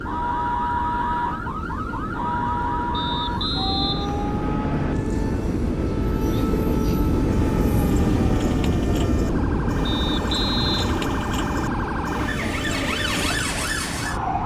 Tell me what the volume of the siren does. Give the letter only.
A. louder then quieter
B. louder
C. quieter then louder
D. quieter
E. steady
C.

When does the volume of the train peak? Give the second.
8 s.